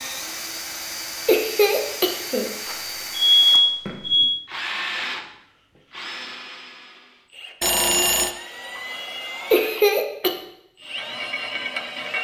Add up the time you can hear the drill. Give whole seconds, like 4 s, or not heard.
12 s.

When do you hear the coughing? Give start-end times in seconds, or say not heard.
1.2-2.5, 9.5-10.3.